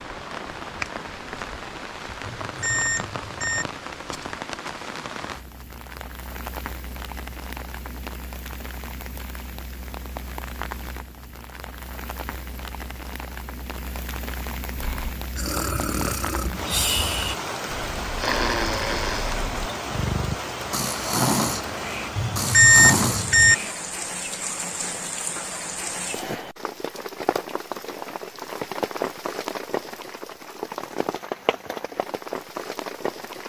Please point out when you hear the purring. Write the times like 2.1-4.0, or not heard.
not heard.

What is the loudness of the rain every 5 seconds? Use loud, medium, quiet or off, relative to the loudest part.
loud, medium, medium, loud, loud, loud, loud.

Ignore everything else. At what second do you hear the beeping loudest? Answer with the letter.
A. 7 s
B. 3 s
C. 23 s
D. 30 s
C.